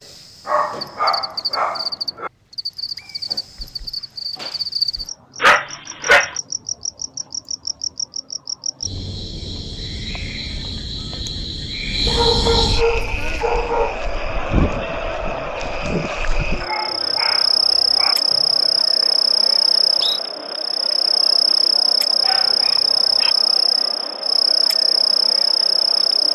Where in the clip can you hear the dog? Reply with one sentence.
You can hear the dog from 0.5 to 2.3 s, from 5.4 to 6.3 s, from 12.1 to 13.9 s, from 16.6 to 18.1 s and from 22.2 to 23.4 s.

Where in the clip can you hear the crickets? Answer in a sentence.
You can hear the crickets from 0.0 to 26.2 s.